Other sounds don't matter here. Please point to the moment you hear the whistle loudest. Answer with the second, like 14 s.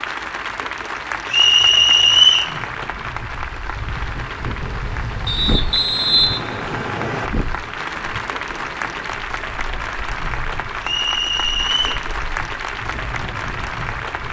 2 s.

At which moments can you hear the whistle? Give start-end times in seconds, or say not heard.
1.3-2.5, 5.2-7.3, 10.8-12.1.